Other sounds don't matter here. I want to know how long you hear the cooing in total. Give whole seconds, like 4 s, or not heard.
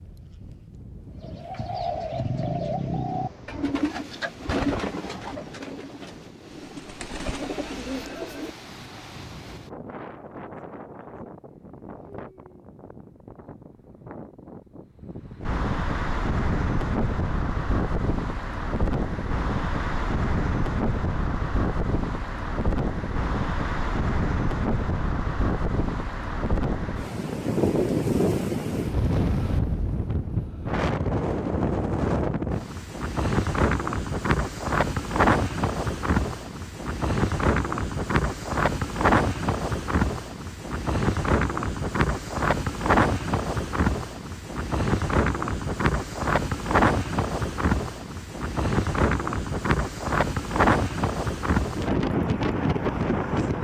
7 s.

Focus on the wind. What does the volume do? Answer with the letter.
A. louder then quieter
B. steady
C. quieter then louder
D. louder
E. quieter
D.